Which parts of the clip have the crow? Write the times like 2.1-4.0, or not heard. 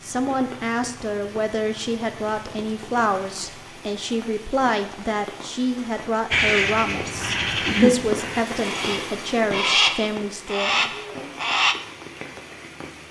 6.3-11.8.